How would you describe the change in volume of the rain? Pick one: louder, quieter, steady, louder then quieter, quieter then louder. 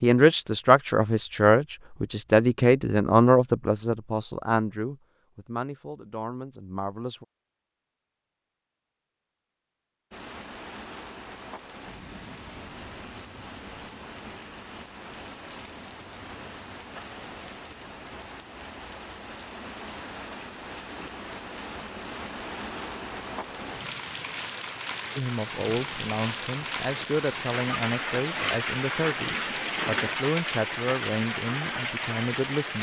louder.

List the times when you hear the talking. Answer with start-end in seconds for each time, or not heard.
0.0-7.2, 25.1-32.7.